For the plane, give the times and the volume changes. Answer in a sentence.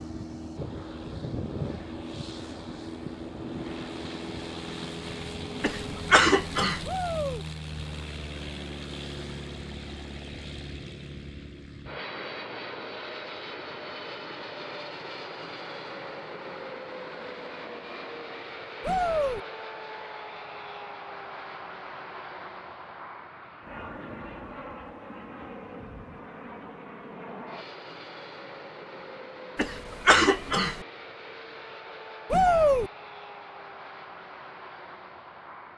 The plane can be heard from 0.0 to 35.7 s, getting quieter.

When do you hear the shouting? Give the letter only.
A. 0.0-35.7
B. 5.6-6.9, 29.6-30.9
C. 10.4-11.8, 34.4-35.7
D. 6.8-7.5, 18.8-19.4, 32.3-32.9
D.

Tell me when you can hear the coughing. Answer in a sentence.
The coughing can be heard from 5.6 to 6.9 s and from 29.6 to 30.9 s.